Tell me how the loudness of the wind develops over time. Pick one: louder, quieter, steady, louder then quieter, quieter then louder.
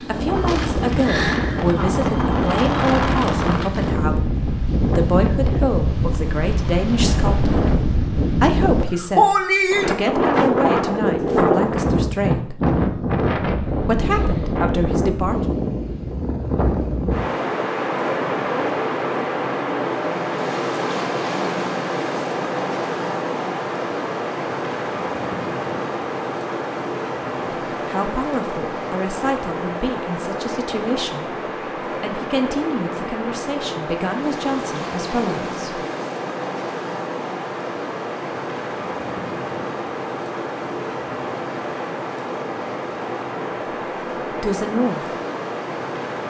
quieter.